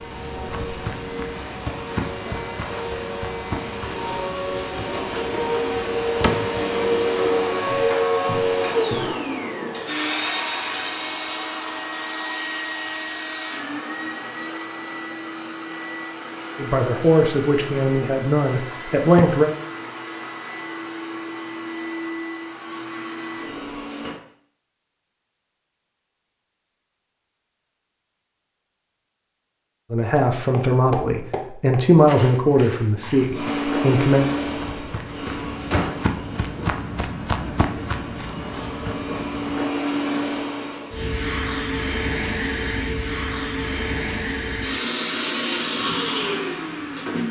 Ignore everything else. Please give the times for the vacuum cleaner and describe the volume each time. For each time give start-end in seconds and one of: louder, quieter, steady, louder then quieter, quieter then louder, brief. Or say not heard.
0.0-24.1 louder then quieter
33.3-47.2 quieter then louder.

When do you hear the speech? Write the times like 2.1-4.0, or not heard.
16.6-19.5, 29.9-34.2.